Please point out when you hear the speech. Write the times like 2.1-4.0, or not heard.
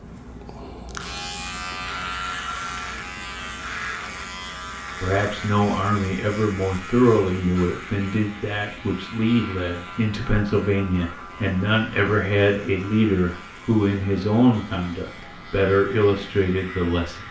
5.0-17.2.